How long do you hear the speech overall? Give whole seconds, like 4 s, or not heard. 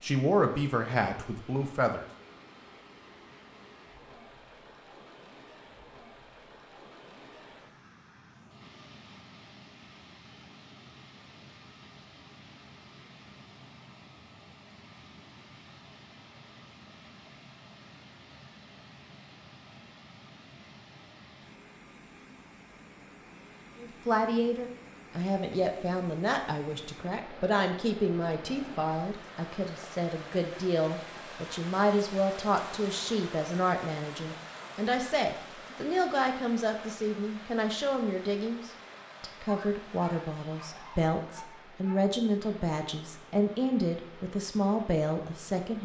24 s.